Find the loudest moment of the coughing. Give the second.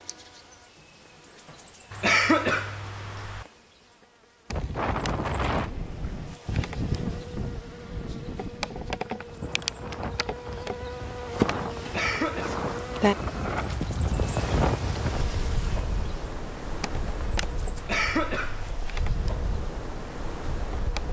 2 s.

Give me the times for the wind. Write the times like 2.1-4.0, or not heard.
4.5-21.0.